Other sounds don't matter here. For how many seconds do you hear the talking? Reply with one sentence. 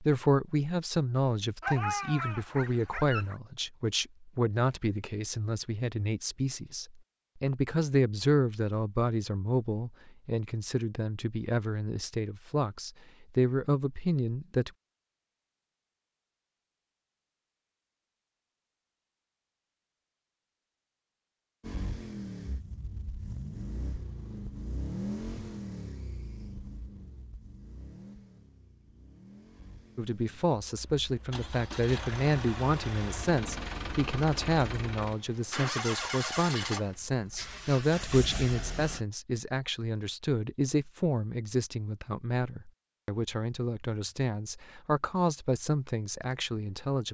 You can hear the talking for 32 seconds altogether.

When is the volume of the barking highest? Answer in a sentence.
The loudest moment of the barking is at 2 seconds.